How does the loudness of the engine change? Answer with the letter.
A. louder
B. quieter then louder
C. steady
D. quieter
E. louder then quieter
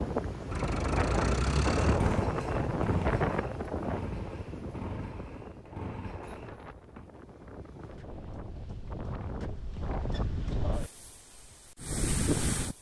D.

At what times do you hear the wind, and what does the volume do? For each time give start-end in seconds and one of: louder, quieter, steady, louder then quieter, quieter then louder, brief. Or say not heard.
0.0-12.7 quieter then louder.